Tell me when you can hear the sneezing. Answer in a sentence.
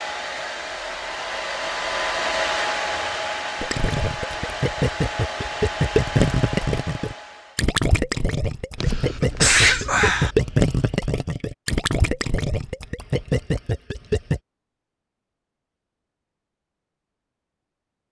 The sneezing can be heard from 8.8 to 10.3 s.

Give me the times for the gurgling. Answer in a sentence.
The gurgling can be heard from 3.6 to 14.4 s.